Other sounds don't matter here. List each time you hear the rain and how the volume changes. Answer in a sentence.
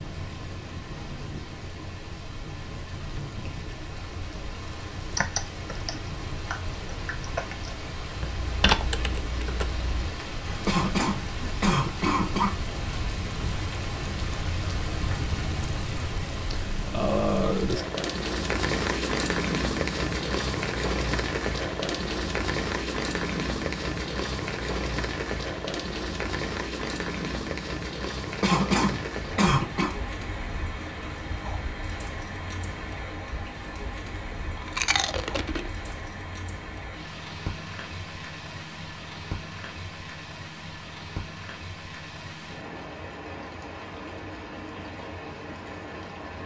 The rain can be heard from 0.0 to 46.4 s, getting louder then quieter.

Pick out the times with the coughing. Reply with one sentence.
The coughing can be heard from 10.7 to 12.5 s and from 28.4 to 29.9 s.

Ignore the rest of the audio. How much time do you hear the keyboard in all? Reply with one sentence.
You can hear the keyboard for 5 seconds altogether.